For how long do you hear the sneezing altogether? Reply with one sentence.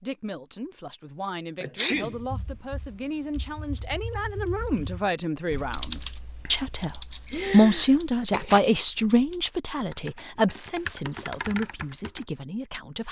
The sneezing can be heard for 2 seconds in total.